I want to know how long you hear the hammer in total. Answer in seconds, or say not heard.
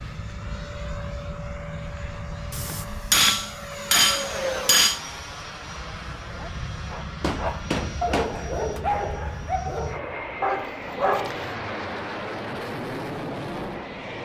4 s.